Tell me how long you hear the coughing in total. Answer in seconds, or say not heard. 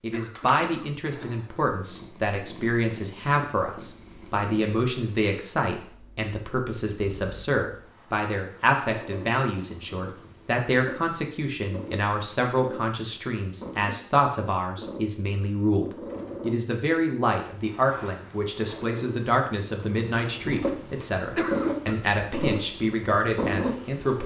2 s.